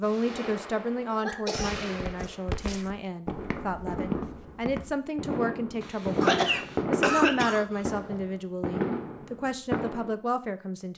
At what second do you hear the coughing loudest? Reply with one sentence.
The volume of the coughing peaks at 7 seconds.